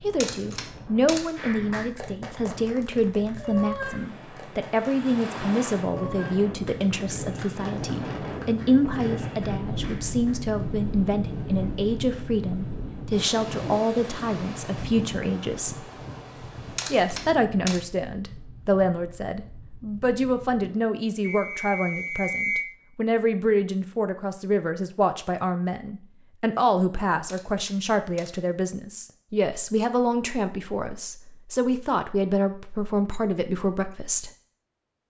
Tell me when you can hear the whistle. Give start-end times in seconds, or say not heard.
21.2-22.6.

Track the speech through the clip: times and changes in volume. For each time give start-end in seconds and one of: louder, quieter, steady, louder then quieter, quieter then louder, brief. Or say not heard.
0.0-15.8 steady
16.9-34.3 steady.